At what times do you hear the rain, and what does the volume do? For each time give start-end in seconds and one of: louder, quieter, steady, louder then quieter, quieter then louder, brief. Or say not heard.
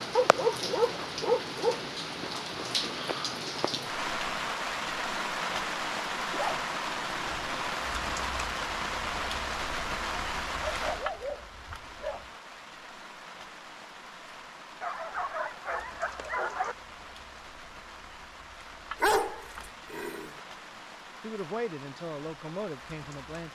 0.0-23.5 quieter.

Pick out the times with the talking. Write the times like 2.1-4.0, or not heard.
21.2-23.5.